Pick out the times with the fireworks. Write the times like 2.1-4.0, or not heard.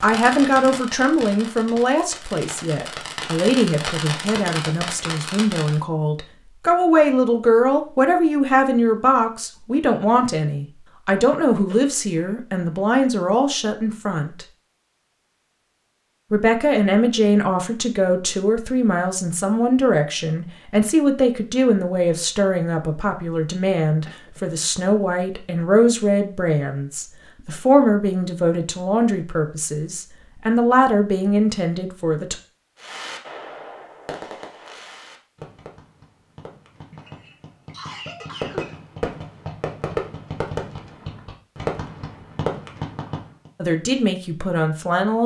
0.0-5.8, 32.8-43.5.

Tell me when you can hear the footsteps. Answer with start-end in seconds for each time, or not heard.
not heard.